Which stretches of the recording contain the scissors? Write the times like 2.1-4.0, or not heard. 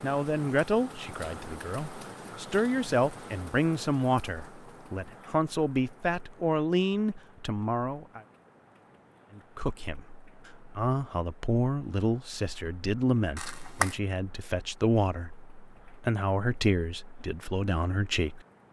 13.3-13.9.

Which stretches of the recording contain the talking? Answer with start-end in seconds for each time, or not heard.
0.0-8.2, 9.3-18.4.